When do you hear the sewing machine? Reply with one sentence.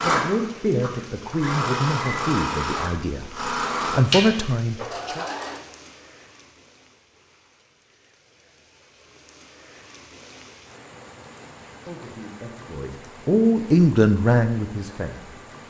You can hear the sewing machine from 0.0 to 5.6 s.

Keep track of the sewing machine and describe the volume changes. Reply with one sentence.
The volume of the sewing machine goes up, then down.